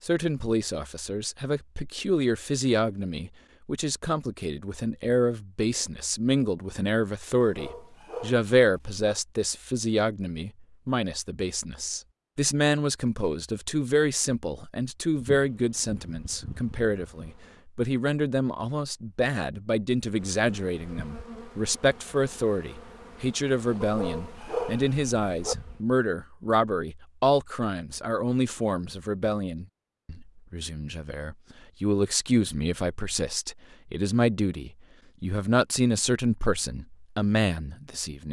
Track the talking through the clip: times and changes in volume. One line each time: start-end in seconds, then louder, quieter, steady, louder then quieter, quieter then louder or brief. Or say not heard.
0.0-38.2 steady.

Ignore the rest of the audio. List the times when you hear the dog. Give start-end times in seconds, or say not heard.
7.4-9.1, 23.8-25.6.